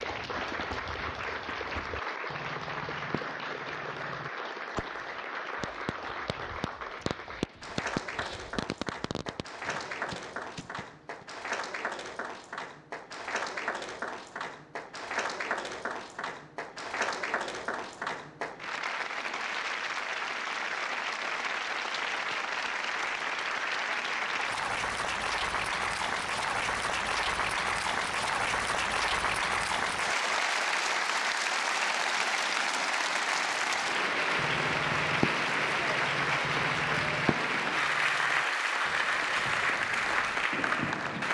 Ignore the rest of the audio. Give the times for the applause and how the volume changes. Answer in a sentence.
You can hear the applause from 0.0 to 41.2 s, getting louder.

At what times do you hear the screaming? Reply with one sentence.
You can't hear the screaming here.